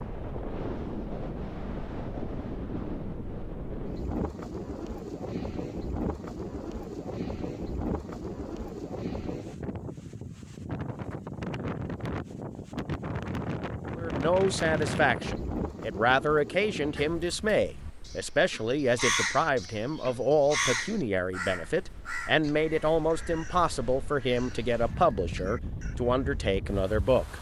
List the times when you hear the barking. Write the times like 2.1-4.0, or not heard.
not heard.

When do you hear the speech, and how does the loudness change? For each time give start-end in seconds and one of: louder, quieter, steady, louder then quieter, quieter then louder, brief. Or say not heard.
13.9-27.3 steady.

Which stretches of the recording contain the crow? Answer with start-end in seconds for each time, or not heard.
16.9-26.5.